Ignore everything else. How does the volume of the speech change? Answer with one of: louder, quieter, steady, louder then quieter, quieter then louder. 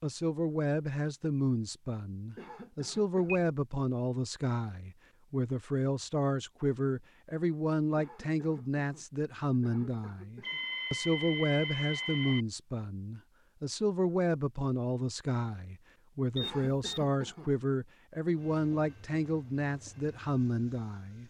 steady.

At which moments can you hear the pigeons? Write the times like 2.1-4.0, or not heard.
not heard.